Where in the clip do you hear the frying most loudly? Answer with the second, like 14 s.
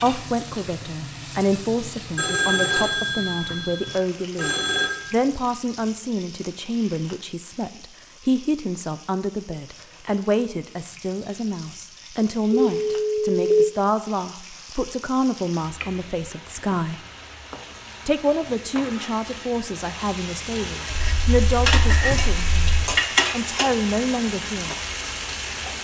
23 s.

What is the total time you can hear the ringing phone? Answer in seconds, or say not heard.
6 s.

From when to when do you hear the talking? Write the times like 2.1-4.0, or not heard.
0.0-17.0, 18.1-24.8.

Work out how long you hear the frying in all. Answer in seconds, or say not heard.
26 s.